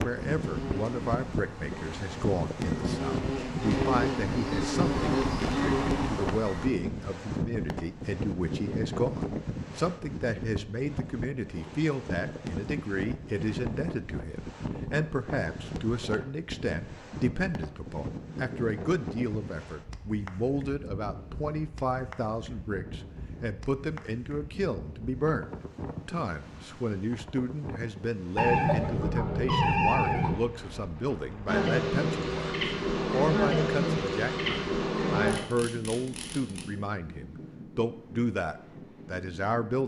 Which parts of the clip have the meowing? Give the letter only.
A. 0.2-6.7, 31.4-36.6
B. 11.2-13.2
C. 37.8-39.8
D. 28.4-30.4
D.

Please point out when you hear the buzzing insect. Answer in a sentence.
You can hear the buzzing insect from 0.2 to 6.7 s and from 31.4 to 36.6 s.